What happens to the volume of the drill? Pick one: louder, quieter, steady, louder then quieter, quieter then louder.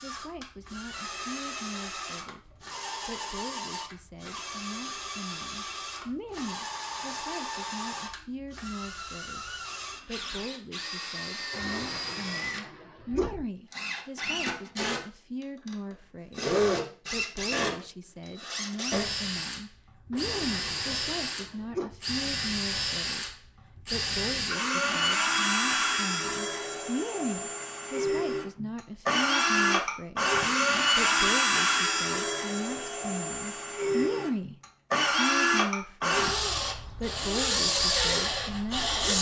louder.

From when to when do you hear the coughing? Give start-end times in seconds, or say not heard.
11.5-13.3, 20.1-21.9.